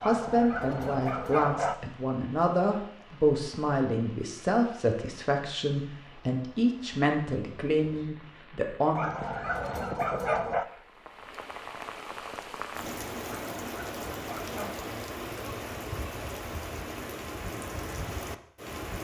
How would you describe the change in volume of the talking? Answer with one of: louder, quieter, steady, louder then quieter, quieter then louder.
steady.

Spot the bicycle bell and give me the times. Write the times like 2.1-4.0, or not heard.
not heard.